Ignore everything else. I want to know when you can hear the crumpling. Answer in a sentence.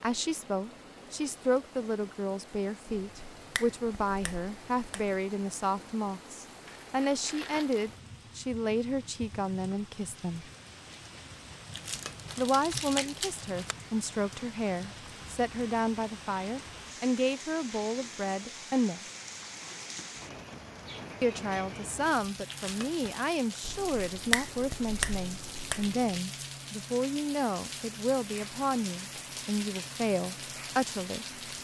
The crumpling can be heard from 6.7 to 8.0 s, from 11.7 to 13.8 s and from 22.4 to 23.2 s.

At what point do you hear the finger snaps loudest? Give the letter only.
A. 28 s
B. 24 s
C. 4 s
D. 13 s
B.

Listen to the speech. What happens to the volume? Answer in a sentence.
The volume of the speech stays about the same.